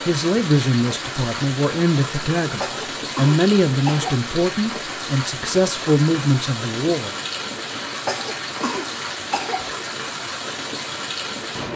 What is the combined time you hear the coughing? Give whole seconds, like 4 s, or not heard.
3 s.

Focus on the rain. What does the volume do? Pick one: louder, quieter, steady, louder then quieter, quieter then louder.
steady.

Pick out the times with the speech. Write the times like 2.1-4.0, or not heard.
0.1-7.2.